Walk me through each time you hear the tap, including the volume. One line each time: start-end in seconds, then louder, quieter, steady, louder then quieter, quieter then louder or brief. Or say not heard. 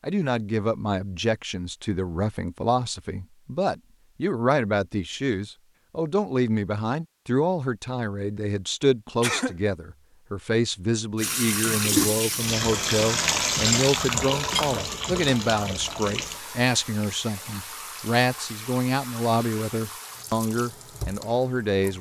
11.2-21.9 quieter.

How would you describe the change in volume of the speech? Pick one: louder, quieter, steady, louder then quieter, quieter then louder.
steady.